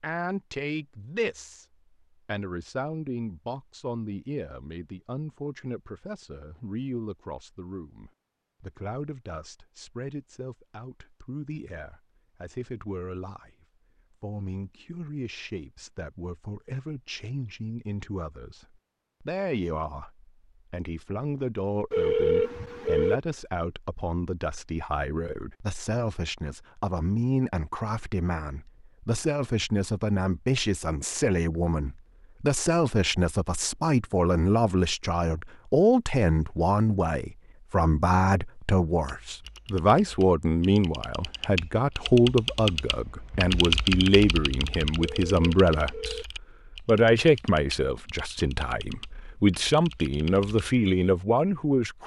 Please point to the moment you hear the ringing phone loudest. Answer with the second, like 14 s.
22 s.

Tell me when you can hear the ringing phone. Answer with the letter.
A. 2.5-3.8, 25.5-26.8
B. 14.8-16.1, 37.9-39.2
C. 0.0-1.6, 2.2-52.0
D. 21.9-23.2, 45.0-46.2
D.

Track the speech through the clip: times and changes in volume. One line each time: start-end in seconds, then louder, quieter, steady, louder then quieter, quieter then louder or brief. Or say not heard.
0.0-1.6 brief
2.2-52.0 louder.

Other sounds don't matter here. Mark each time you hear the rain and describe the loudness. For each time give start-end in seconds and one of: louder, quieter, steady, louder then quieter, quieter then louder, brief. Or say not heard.
not heard.